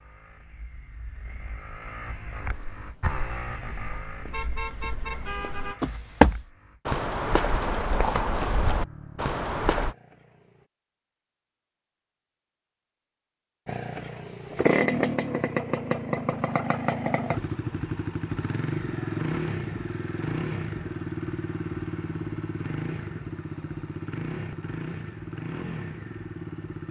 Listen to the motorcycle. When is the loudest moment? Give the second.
15 s.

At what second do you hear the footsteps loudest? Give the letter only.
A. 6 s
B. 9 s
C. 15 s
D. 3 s
A.